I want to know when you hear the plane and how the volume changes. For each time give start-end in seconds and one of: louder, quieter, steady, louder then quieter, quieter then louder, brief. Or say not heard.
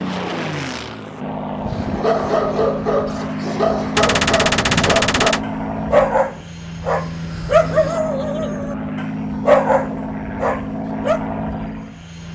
0.0-12.3 steady.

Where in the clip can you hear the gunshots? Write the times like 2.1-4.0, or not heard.
4.0-5.5.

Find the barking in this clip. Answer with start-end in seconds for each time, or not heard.
1.6-11.2.